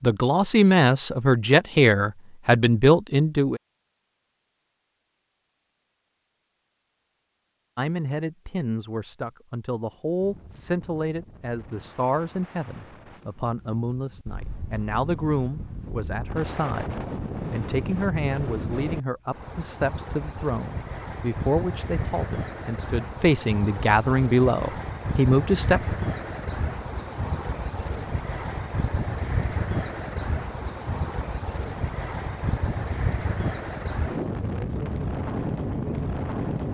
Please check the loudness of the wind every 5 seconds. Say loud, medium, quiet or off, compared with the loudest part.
off, off, quiet, medium, medium, loud, loud, loud.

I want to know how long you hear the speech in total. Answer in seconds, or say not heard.
22 s.